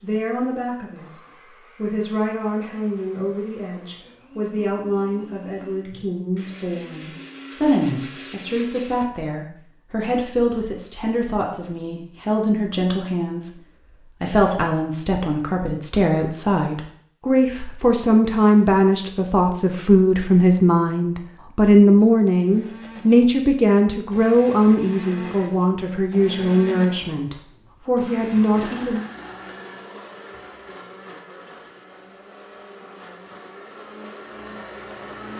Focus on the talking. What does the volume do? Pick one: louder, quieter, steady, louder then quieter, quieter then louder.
louder.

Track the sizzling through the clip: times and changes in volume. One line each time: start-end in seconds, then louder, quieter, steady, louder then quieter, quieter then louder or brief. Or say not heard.
not heard.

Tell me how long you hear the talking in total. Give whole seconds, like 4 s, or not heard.
29 s.